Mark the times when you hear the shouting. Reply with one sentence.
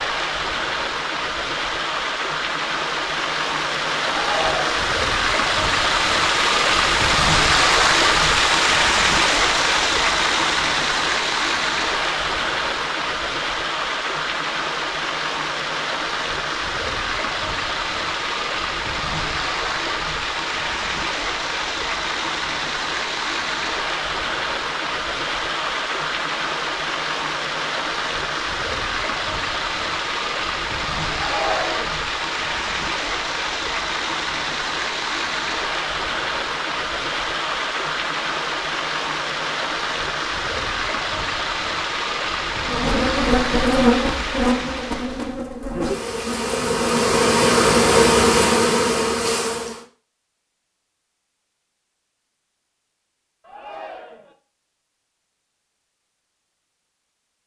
You can hear the shouting from 4.2 to 5.0 s, from 31.1 to 32.0 s and from 53.4 to 54.4 s.